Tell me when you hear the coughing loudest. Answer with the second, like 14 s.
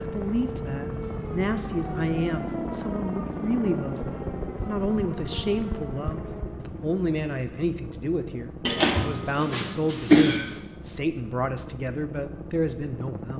10 s.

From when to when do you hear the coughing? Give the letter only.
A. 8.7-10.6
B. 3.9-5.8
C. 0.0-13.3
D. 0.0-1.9
A.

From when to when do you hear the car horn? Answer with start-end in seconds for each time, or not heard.
not heard.